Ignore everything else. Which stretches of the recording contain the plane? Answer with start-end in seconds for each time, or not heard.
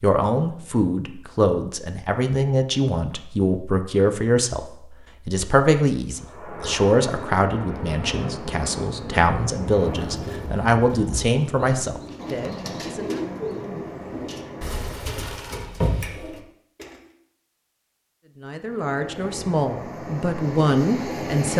6.1-15.0, 18.6-21.5.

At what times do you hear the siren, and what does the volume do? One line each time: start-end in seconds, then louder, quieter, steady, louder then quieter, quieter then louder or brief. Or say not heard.
not heard.